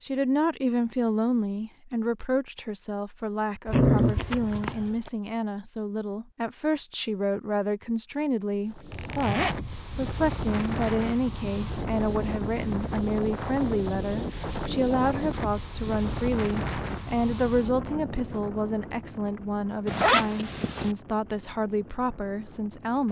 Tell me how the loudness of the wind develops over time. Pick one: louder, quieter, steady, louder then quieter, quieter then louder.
quieter.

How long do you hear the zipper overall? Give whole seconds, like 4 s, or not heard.
3 s.